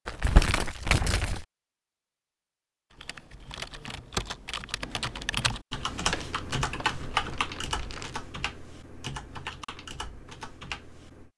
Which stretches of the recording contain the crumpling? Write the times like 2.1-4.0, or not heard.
0.1-1.4, 6.1-8.2.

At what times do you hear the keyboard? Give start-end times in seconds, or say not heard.
2.9-11.3.